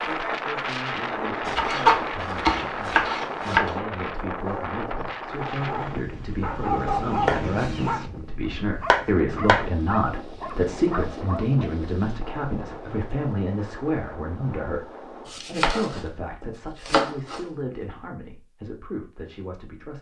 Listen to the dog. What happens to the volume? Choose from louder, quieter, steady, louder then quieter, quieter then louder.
louder then quieter.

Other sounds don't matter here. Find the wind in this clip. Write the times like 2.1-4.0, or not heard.
0.0-15.3.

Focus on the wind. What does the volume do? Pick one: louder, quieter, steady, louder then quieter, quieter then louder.
quieter.